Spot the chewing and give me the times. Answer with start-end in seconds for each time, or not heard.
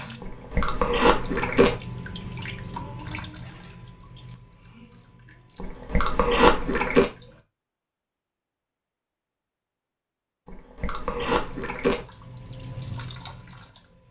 0.2-1.8, 5.5-7.0, 10.4-12.1.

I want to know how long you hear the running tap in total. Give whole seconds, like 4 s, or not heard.
10 s.